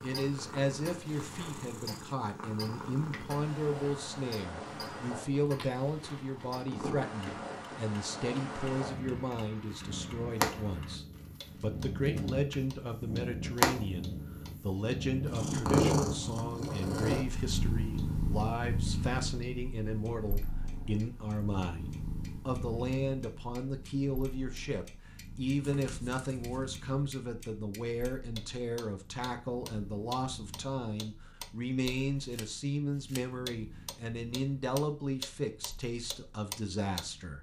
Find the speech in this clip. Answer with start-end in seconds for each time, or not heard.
0.0-37.3.